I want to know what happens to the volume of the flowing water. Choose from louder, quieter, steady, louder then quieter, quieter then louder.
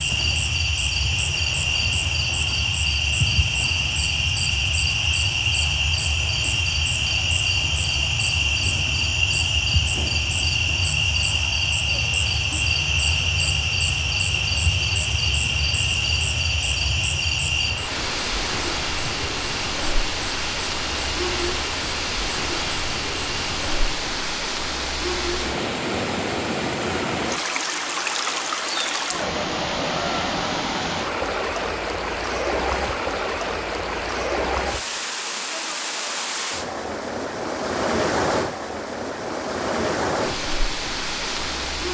louder.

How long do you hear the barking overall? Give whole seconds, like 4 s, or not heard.
not heard.